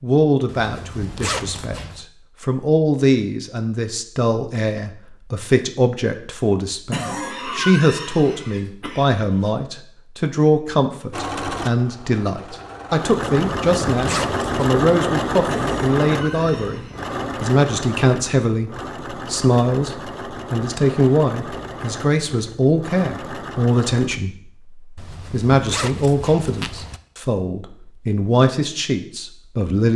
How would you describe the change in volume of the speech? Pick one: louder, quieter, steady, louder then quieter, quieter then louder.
steady.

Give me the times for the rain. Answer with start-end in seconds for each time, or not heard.
not heard.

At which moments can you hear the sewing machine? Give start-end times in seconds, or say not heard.
11.1-24.2.